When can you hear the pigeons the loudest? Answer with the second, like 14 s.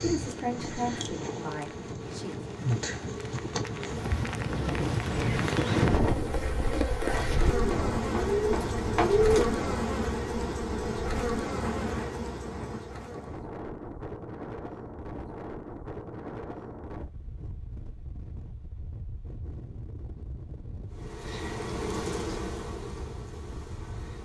9 s.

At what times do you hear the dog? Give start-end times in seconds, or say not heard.
not heard.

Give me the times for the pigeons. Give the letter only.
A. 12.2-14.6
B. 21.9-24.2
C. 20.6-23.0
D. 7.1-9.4
D.